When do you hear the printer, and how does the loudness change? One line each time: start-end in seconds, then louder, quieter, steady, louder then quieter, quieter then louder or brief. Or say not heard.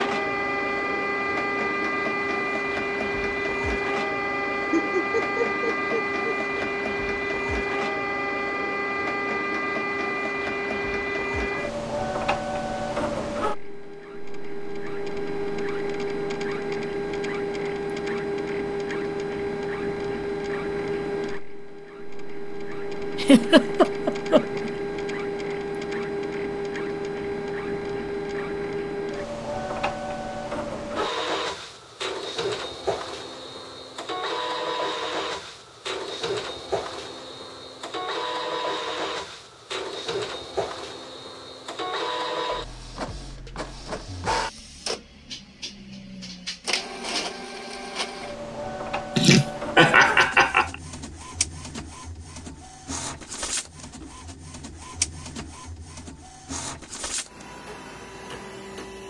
0.0-59.0 quieter.